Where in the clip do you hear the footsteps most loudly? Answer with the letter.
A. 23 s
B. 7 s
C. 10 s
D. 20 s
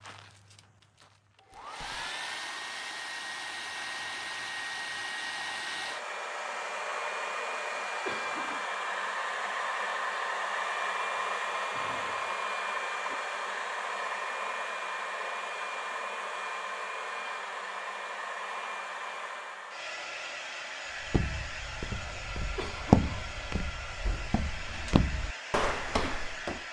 A.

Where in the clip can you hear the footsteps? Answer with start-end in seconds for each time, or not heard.
21.0-26.6.